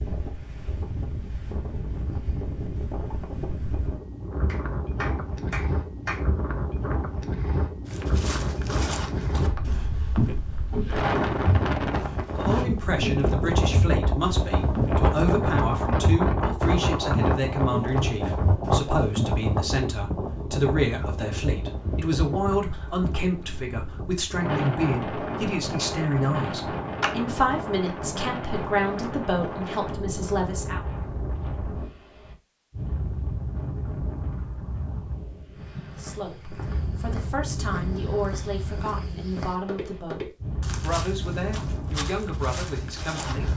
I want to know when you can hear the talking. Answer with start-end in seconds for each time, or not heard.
12.3-30.9, 36.0-43.5.